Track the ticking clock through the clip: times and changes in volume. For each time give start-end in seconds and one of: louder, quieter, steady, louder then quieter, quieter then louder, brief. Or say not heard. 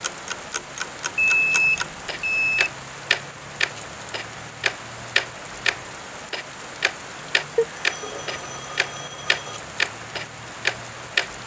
0.0-11.3 louder.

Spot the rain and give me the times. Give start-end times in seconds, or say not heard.
0.0-11.4.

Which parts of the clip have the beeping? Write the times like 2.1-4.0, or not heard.
1.1-2.7, 7.5-9.6.